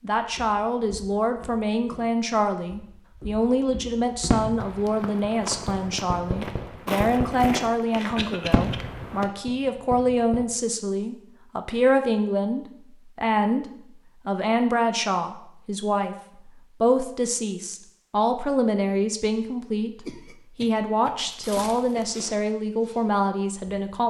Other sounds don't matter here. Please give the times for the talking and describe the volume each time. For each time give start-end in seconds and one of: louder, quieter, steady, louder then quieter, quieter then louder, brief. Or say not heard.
0.0-13.7 steady
14.2-24.0 steady.